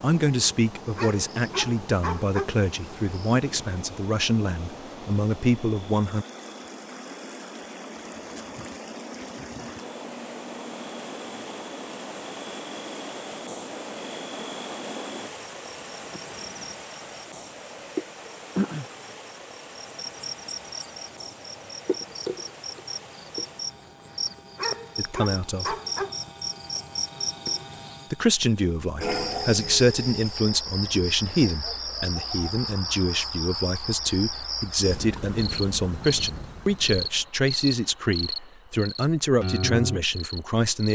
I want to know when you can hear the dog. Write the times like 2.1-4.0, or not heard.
0.9-2.5, 24.6-26.2.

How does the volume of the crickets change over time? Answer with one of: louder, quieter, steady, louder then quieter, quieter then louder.
louder.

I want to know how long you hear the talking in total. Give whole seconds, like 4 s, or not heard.
20 s.